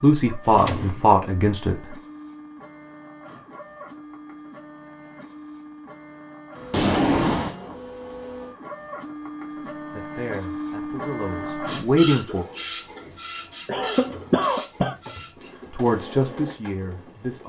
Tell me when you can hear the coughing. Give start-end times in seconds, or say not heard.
13.7-14.9.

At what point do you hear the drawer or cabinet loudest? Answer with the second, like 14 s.
7 s.